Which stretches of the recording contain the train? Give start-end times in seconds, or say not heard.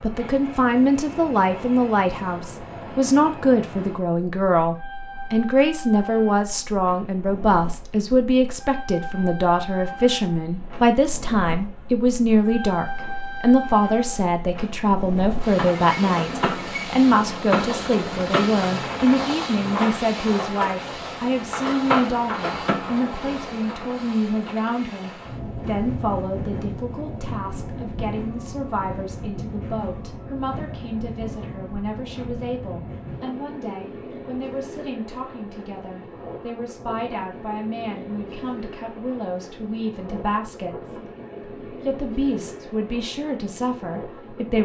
0.0-44.6.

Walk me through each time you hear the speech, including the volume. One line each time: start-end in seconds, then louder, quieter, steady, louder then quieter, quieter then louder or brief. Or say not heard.
0.0-41.0 quieter
41.7-44.6 brief.